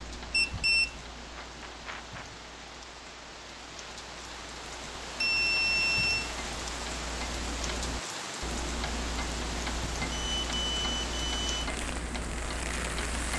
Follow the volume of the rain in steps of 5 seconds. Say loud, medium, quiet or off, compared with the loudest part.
medium, loud, loud.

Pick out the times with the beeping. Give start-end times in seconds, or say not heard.
0.3-2.2, 5.2-6.3, 10.1-11.6.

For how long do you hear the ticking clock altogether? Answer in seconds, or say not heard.
13 s.